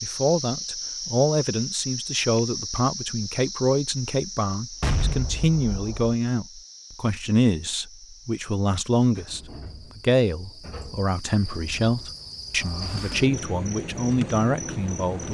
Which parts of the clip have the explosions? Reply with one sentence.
The explosions can be heard from 4.8 to 6.2 s.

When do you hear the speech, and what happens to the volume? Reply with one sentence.
The speech can be heard from 0.0 to 15.2 s, at a steady volume.